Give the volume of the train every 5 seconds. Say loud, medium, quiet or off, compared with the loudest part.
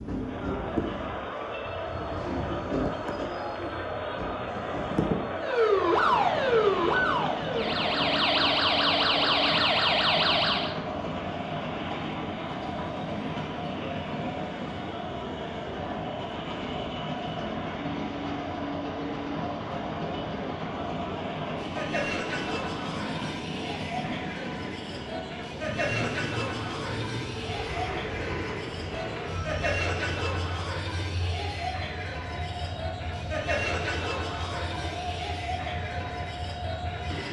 loud, loud, loud, loud, loud, loud, medium, loud.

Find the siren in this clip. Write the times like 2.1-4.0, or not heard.
5.3-10.8.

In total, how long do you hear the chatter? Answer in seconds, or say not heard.
37 s.